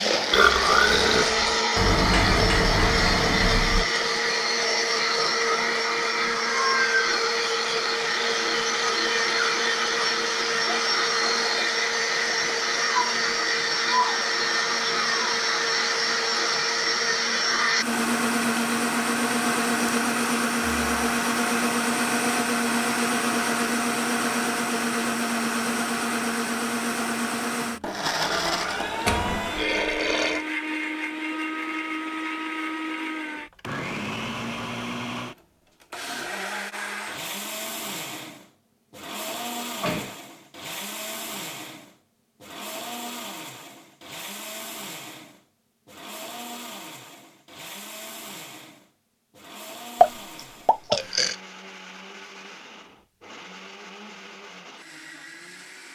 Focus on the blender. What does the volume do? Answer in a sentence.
The volume of the blender goes down.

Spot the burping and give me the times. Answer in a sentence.
You can hear the burping from 0.3 to 1.5 s, from 28.2 to 30.4 s and from 50.0 to 51.4 s.